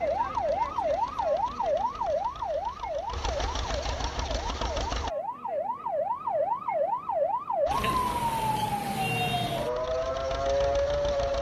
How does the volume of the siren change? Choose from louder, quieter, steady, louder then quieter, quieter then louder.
quieter then louder.